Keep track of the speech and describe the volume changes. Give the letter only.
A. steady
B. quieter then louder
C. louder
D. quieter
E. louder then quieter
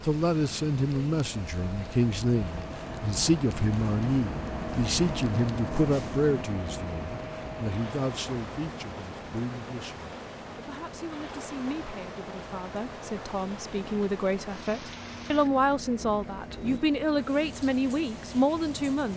B.